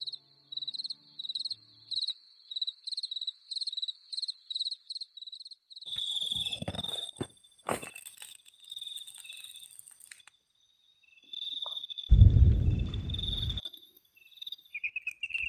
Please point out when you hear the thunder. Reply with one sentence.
The thunder can be heard from 12.1 to 13.6 s.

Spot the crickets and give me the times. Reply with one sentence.
You can hear the crickets from 0.0 to 15.4 s.